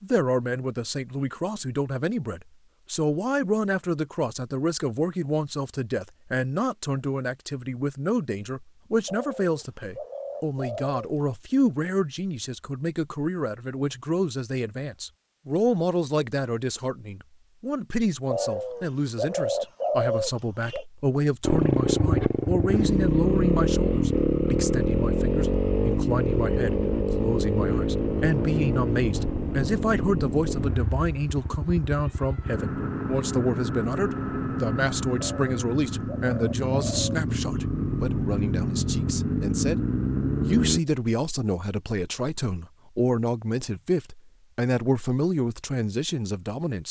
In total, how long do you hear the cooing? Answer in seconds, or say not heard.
7 s.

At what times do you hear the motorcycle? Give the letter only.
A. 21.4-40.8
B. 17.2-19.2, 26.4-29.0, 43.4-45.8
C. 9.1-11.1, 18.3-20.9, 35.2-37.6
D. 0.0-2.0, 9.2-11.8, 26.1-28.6
A.